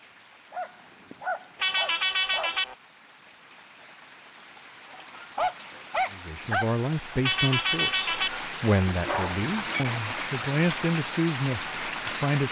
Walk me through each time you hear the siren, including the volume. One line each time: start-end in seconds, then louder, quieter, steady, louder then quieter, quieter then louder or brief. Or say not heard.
not heard.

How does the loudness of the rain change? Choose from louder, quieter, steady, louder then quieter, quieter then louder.
louder.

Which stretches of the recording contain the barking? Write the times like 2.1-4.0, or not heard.
0.5-2.5, 4.9-6.7, 8.9-9.8.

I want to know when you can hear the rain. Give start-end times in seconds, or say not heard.
0.0-12.4.